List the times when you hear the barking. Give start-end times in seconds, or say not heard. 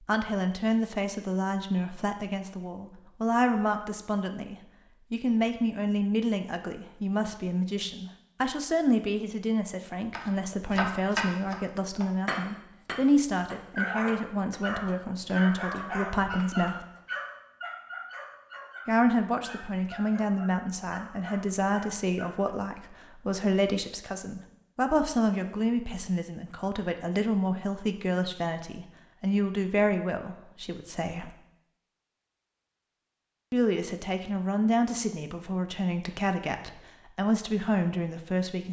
13.8-22.6.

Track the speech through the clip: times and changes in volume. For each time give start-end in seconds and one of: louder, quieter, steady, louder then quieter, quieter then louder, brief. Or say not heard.
0.0-16.9 steady
18.9-31.4 steady
33.5-38.6 steady.